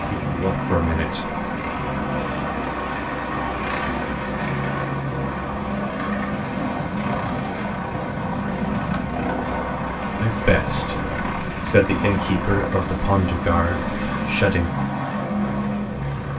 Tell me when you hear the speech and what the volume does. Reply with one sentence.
The speech can be heard briefly from 0.1 to 1.3 s; and from 10.2 to 14.7 s, getting louder then quieter.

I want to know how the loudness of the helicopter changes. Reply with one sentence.
The volume of the helicopter stays about the same.